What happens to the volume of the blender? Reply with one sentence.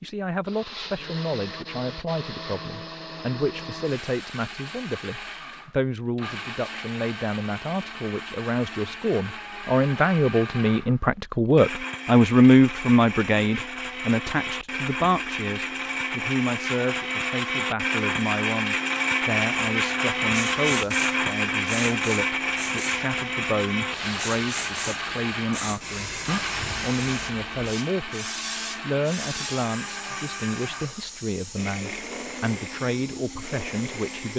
The loudness of the blender goes up, then down.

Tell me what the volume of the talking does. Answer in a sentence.
The volume of the talking goes up, then down.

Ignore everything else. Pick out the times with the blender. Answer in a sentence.
You can hear the blender from 0.0 to 34.3 s.